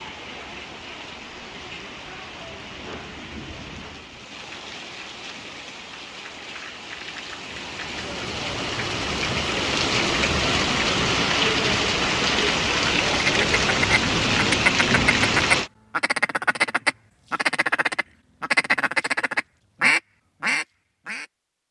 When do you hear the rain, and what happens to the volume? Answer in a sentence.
The rain can be heard from 0.0 to 15.7 s, getting louder.